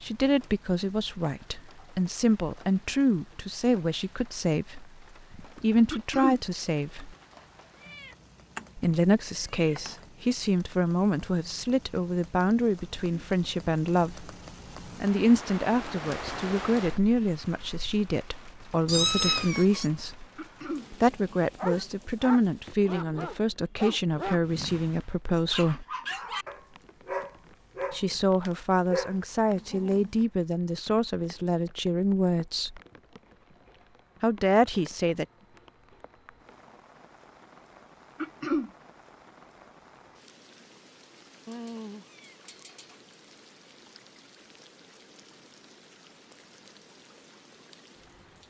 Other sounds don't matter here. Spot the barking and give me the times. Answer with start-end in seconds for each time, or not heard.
21.6-30.1.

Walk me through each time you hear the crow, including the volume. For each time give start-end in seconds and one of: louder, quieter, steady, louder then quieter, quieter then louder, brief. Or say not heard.
not heard.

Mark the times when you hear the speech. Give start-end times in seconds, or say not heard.
0.0-7.2, 8.8-14.3, 15.0-20.2, 20.9-25.9, 27.9-32.8, 34.2-35.2.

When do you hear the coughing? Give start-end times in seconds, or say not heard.
5.9-6.4, 20.4-20.9, 38.2-38.7.